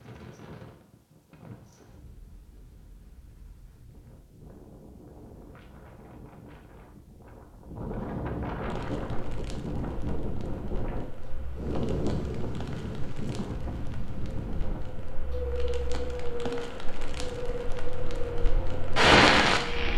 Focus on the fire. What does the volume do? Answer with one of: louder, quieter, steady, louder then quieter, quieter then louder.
louder.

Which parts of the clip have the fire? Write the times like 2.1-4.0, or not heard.
8.7-19.9.